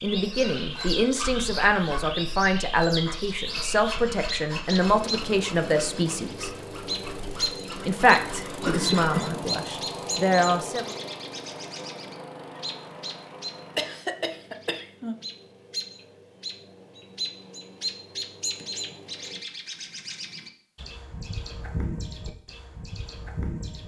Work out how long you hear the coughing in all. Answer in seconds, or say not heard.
2 s.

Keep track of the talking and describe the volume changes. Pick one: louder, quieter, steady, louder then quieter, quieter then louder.
steady.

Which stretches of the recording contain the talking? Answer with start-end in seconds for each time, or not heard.
0.0-6.5, 7.8-10.9.